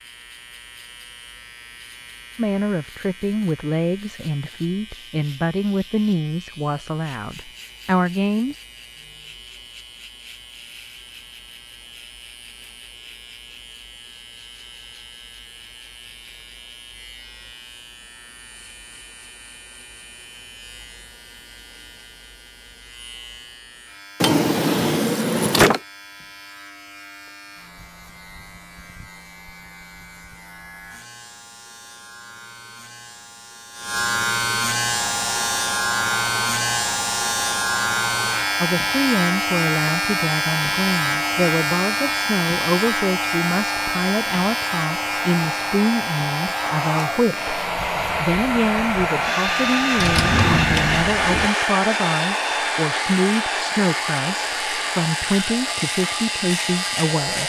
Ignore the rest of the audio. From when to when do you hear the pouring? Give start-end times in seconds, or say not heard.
not heard.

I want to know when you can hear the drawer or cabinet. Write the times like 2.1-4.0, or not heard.
24.2-25.8, 50.0-51.5.